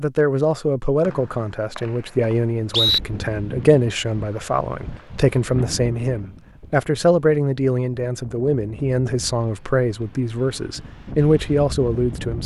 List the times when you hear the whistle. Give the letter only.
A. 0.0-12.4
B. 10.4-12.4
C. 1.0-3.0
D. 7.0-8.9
C.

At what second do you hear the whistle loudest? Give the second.
3 s.